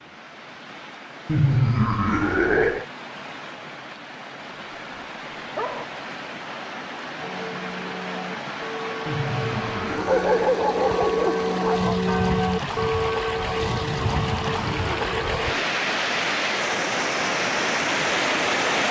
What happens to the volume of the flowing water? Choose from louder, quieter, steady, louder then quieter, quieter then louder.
louder.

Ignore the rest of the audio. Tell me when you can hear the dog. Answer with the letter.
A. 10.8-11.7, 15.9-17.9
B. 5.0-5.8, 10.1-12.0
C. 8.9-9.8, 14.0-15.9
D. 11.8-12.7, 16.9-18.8
B.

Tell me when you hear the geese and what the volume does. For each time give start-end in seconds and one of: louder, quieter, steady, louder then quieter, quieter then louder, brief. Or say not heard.
not heard.